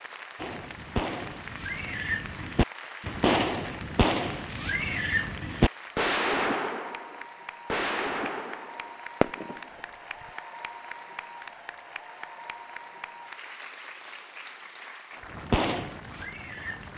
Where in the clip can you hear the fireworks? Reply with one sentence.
The fireworks can be heard from 0.3 to 10.3 s and from 15.3 to 16.9 s.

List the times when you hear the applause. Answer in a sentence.
You can hear the applause from 0.0 to 16.9 s.